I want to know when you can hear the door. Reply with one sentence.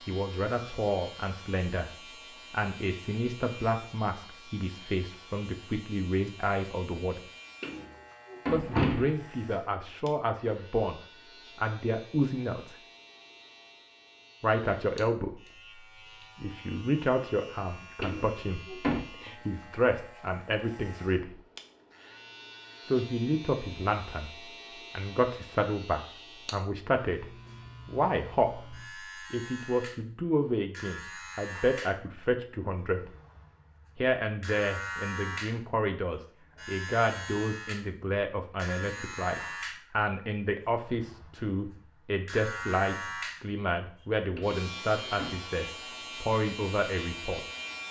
You can hear the door from 7.6 to 9.2 s, from 18.0 to 19.0 s and from 44.4 to 45.4 s.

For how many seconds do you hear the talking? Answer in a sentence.
The talking can be heard for 41 seconds in total.